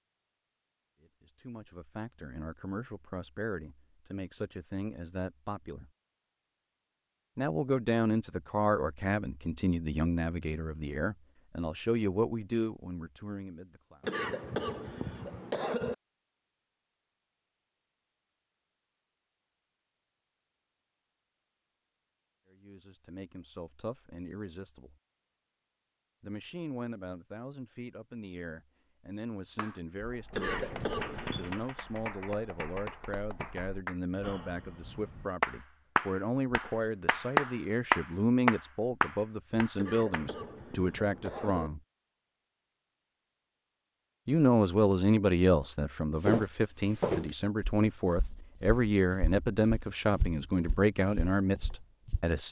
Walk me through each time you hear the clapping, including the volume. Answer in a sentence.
You can hear the clapping from 29.6 to 40.3 s, getting louder.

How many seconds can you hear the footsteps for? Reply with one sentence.
You can hear the footsteps for 6 seconds altogether.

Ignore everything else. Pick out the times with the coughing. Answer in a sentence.
The coughing can be heard from 14.0 to 15.9 s, from 30.3 to 31.6 s and from 39.8 to 41.7 s.